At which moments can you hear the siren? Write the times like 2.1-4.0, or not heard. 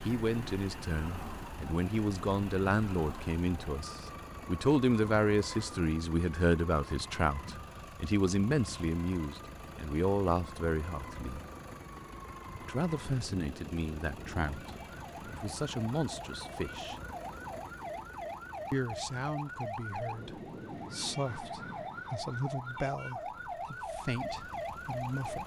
0.0-25.4.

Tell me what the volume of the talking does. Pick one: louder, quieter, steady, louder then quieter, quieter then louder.
quieter.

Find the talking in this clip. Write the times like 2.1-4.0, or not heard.
0.0-11.4, 12.6-17.0, 18.7-25.4.